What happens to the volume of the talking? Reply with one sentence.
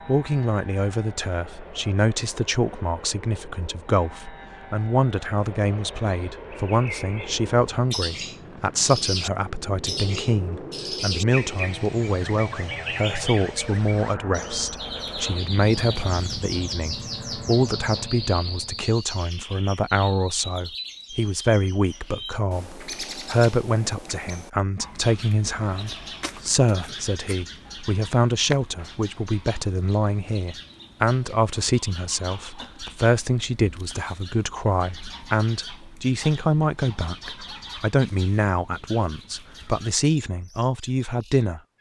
The volume of the talking stays about the same.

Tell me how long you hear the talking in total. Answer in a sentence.
You can hear the talking for 42 seconds altogether.